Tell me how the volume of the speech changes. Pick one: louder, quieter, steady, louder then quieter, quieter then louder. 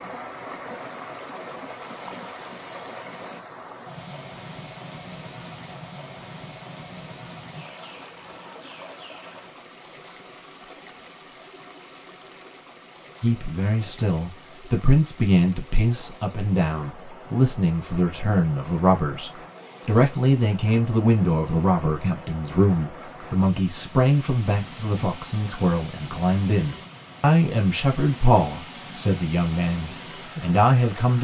steady.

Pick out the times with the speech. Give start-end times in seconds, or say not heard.
13.2-31.1.